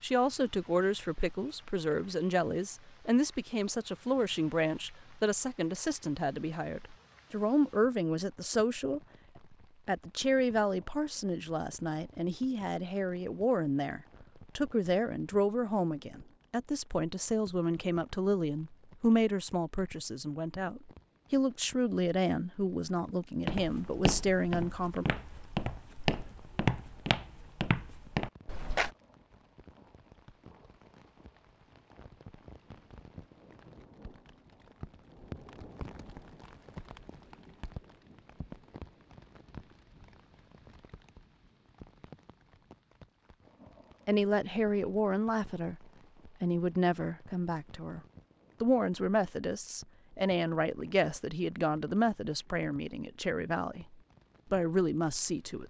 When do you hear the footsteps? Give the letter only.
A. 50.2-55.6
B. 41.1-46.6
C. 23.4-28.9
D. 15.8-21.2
C.